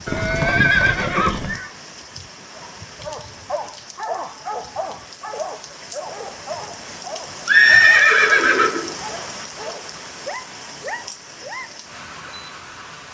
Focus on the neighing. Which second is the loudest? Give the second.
8 s.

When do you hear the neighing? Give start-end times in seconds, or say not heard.
0.1-1.7, 7.5-8.9.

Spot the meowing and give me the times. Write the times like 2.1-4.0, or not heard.
not heard.